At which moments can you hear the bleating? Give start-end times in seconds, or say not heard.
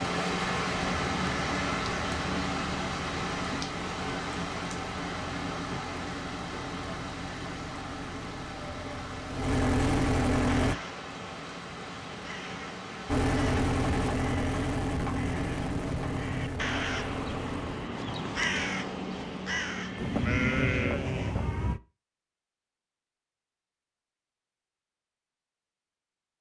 19.9-21.8.